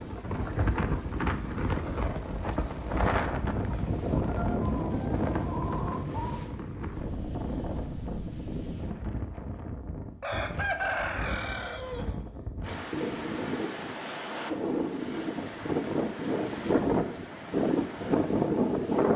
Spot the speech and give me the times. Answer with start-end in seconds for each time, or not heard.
not heard.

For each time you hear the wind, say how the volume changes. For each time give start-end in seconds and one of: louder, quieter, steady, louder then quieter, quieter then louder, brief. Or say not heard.
0.0-19.1 quieter then louder.